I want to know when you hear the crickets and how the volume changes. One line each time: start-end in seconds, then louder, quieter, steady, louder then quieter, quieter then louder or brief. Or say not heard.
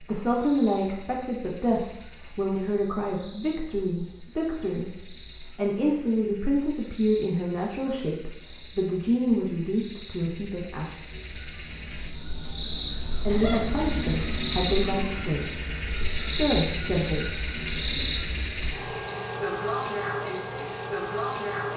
0.0-21.7 louder.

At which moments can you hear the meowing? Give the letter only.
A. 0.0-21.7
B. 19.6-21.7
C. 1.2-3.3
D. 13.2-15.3
D.